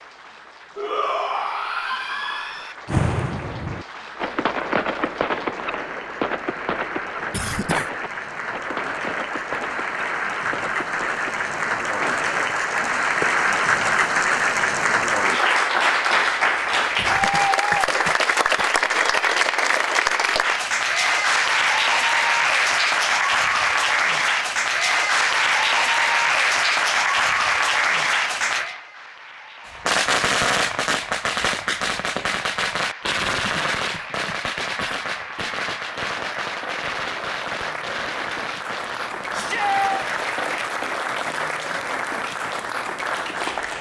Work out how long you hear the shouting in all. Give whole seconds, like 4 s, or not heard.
3 s.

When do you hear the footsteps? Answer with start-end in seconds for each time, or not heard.
not heard.